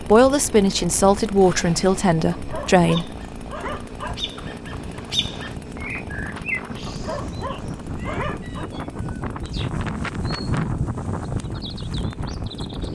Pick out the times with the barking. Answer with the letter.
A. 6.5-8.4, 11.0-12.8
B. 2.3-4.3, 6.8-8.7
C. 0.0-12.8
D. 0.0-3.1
B.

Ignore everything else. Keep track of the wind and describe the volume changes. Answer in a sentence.
The volume of the wind goes up.